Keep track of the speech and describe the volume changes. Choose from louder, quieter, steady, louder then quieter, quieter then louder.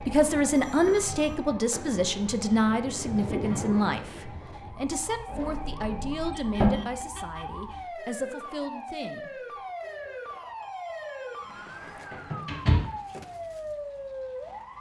quieter.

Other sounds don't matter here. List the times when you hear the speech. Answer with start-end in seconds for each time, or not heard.
0.1-9.6.